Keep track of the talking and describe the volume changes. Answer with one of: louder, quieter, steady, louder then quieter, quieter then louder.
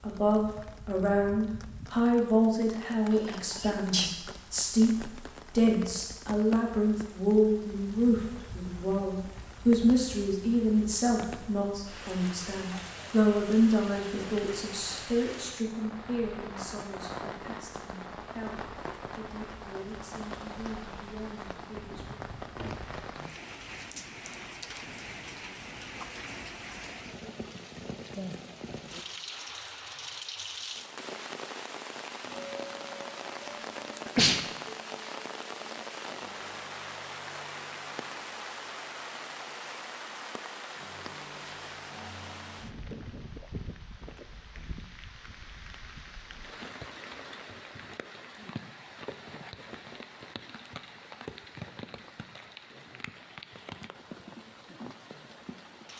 quieter.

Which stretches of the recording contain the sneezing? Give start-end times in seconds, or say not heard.
3.1-4.2, 34.0-34.5.